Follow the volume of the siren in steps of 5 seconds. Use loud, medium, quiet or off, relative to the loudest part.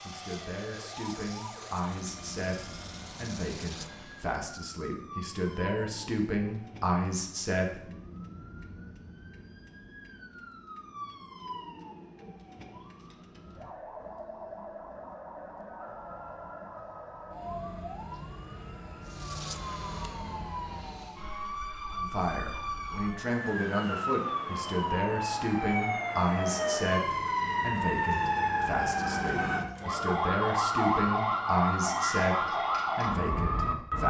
quiet, quiet, quiet, quiet, medium, loud, loud.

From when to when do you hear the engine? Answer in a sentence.
The engine can be heard from 0.0 to 4.5 s and from 19.1 to 21.3 s.